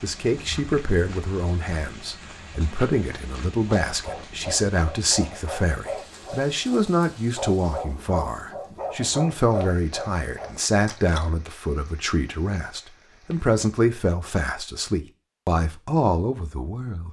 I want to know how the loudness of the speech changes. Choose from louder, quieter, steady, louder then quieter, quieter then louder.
steady.